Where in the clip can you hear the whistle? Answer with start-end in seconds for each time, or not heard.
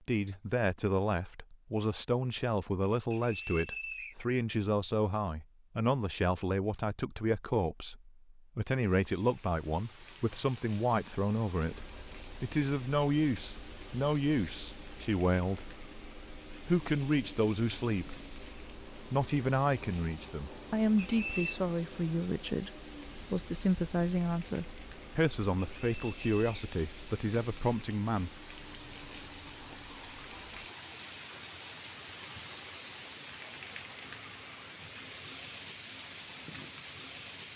3.1-4.2, 20.9-21.6, 25.8-26.6.